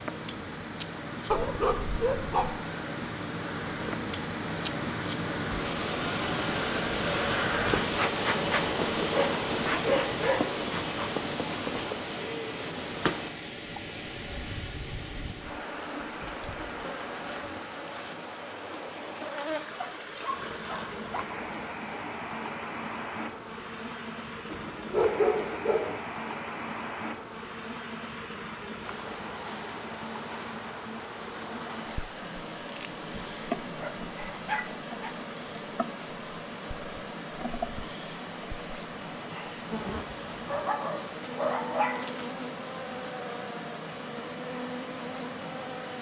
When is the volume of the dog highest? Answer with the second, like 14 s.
25 s.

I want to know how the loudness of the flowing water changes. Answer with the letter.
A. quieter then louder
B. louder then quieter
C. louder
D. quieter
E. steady
D.